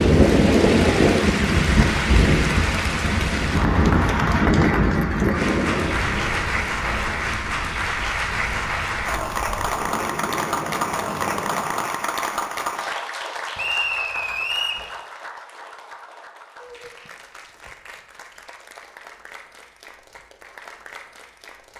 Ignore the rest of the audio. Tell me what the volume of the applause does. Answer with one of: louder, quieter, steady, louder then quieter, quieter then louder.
quieter.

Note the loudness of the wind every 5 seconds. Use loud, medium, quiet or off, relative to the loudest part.
loud, medium, quiet, off, off.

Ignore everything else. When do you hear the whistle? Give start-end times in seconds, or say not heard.
13.6-14.8.